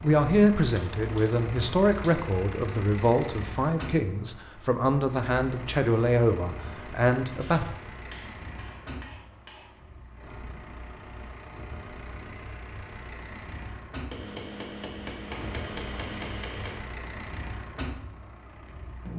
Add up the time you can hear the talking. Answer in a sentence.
You can hear the talking for 8 seconds altogether.